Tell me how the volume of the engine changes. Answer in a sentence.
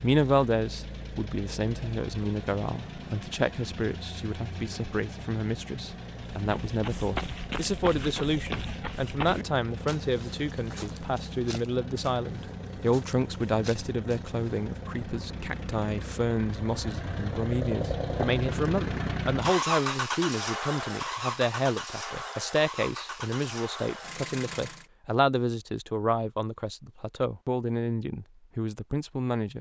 The volume of the engine goes up.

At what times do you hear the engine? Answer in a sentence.
You can hear the engine from 0.0 to 24.9 s.